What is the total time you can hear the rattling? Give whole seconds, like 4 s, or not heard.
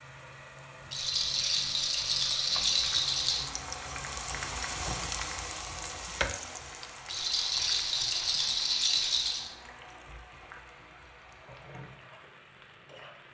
5 s.